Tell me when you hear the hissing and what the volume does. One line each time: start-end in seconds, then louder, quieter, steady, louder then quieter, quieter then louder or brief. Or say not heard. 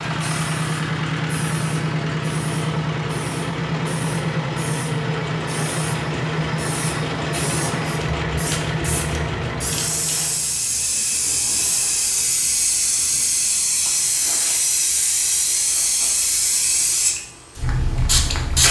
0.0-18.6 louder.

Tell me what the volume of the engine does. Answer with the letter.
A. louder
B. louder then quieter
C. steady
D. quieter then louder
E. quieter
C.